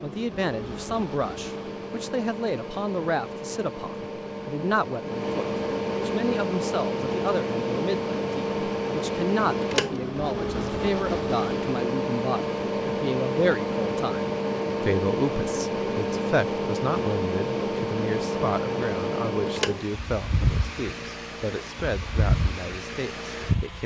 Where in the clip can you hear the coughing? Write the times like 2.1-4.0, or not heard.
not heard.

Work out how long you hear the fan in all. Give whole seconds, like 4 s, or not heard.
24 s.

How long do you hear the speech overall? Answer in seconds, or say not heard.
24 s.